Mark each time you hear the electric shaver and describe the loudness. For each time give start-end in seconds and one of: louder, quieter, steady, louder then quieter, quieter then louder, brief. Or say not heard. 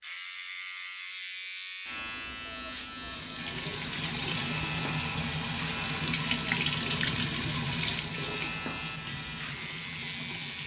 0.0-10.6 steady.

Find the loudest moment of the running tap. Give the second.
7 s.